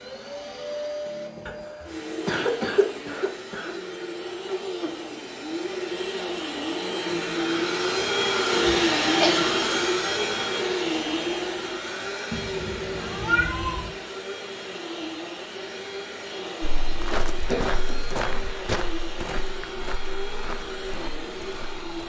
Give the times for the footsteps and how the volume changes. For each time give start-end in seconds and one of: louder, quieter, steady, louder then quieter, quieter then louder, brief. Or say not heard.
16.6-22.0 quieter.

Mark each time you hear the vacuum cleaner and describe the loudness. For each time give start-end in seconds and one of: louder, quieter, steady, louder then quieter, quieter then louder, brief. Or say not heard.
0.0-22.0 louder then quieter.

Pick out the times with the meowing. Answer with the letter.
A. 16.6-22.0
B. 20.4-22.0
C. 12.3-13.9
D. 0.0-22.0
C.